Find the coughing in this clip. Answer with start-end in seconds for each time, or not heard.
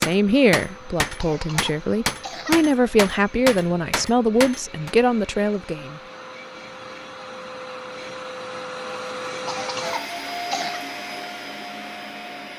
1.1-2.6, 9.4-10.8.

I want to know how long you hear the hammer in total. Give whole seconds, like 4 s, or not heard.
5 s.